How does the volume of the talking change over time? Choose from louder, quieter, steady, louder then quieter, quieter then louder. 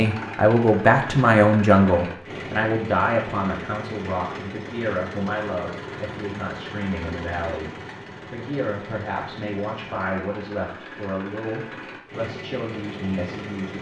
quieter.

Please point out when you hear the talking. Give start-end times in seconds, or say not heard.
0.0-13.7.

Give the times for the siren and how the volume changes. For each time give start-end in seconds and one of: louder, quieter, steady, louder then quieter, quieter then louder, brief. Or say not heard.
not heard.